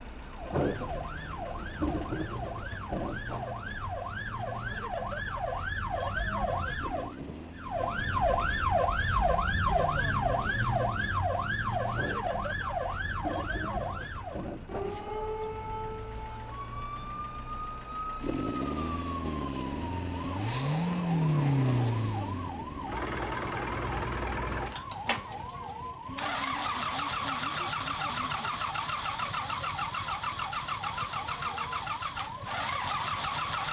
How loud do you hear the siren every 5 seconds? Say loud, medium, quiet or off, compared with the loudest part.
medium, loud, loud, medium, medium, medium, medium.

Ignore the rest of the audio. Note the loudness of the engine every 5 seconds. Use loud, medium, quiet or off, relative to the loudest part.
medium, quiet, medium, medium, loud, loud, loud.